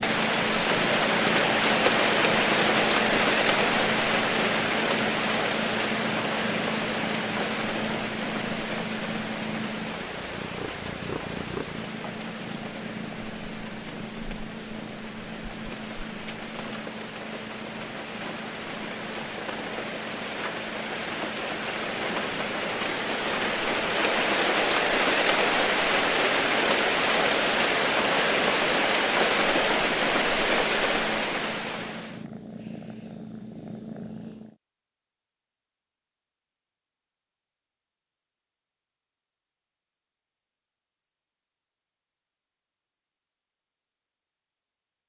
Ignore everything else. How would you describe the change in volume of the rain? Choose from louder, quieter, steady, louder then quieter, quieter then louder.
quieter then louder.